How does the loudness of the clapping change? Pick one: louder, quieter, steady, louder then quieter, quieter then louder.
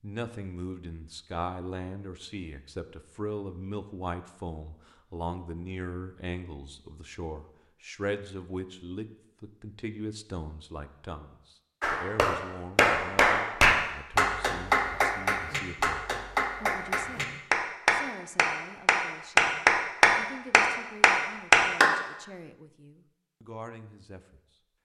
quieter then louder.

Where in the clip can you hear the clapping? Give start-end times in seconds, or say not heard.
11.8-21.9.